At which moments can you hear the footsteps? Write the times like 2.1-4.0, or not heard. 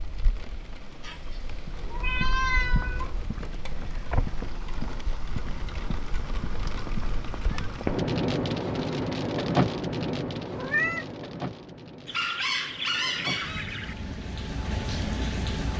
1.5-8.1.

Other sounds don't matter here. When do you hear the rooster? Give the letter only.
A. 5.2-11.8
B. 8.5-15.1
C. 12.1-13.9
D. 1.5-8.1
C.